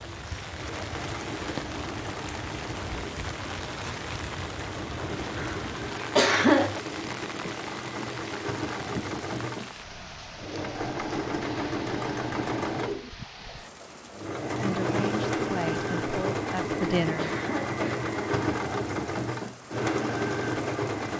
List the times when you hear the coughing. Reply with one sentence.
You can hear the coughing from 6.1 to 6.8 s and from 17.1 to 18.0 s.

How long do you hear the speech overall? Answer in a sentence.
The speech can be heard for 3 seconds in total.